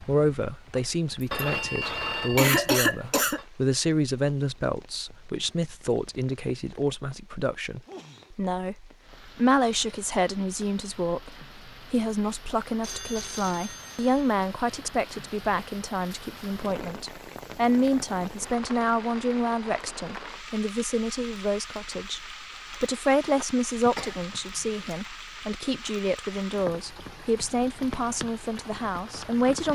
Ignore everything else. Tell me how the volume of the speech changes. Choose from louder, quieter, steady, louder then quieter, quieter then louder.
steady.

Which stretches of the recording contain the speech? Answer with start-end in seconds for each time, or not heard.
0.0-29.7.